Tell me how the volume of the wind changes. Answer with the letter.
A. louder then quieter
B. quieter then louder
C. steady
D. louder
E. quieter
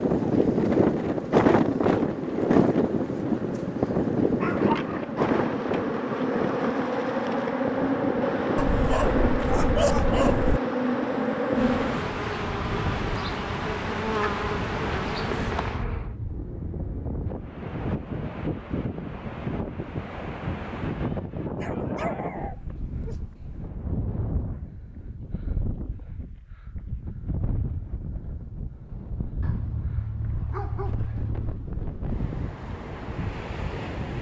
E.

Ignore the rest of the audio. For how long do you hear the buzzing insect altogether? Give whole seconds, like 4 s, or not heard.
16 s.